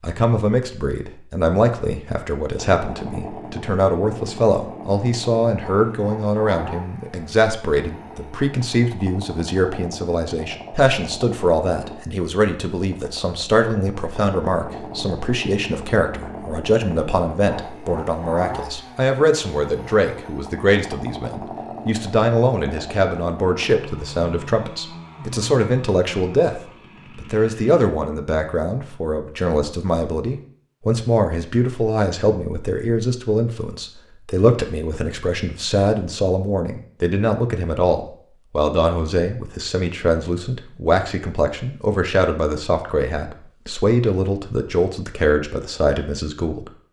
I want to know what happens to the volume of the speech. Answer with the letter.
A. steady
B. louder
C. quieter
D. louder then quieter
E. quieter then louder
A.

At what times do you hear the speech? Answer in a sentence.
The speech can be heard from 0.0 to 46.7 s.